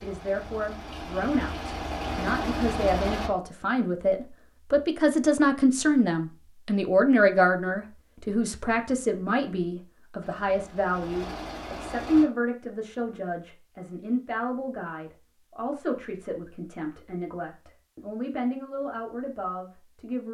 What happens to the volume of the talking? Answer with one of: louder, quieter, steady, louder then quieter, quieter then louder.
louder then quieter.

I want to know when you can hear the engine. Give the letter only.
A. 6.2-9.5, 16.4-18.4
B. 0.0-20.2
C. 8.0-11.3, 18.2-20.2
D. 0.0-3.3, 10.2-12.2
D.